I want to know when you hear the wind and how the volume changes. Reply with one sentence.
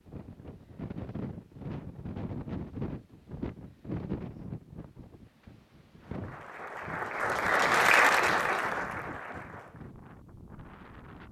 The wind can be heard from 0.0 to 11.2 s, getting quieter.